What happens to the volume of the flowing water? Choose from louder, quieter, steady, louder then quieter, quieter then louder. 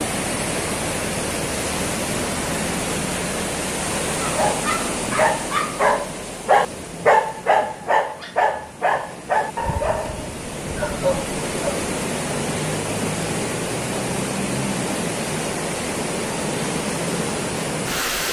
quieter then louder.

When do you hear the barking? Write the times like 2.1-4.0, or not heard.
4.2-11.9.